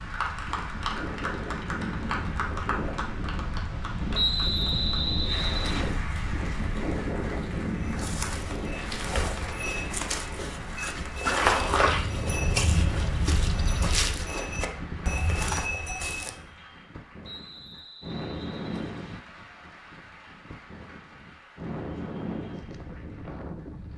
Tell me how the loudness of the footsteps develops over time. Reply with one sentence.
The volume of the footsteps goes up, then down.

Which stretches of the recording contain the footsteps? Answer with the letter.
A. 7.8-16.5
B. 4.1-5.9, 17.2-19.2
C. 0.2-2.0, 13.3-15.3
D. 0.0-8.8
A.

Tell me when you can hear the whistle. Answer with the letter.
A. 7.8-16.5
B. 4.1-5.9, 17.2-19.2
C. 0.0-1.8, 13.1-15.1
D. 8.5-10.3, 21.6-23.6
B.